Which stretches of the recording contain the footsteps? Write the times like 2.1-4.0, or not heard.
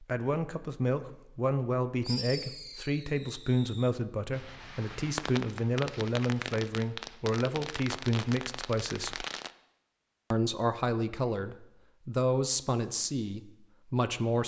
not heard.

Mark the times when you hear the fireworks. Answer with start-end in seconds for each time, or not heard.
2.0-9.5.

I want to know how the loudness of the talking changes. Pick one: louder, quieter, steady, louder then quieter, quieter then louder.
steady.